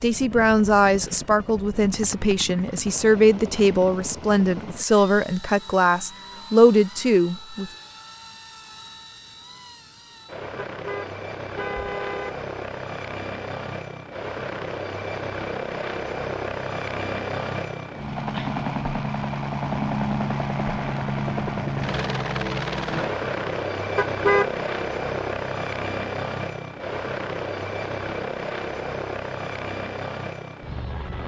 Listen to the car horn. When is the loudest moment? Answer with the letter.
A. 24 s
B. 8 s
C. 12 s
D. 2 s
A.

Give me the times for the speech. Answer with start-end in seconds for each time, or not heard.
0.0-7.7.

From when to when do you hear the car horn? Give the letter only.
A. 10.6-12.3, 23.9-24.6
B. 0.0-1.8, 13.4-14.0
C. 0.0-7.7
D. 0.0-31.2
A.